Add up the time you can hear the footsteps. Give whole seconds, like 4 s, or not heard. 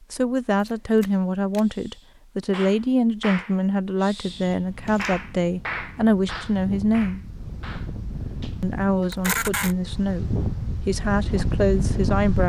not heard.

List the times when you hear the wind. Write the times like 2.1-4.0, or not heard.
4.7-12.4.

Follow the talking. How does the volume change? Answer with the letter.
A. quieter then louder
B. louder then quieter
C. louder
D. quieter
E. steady
E.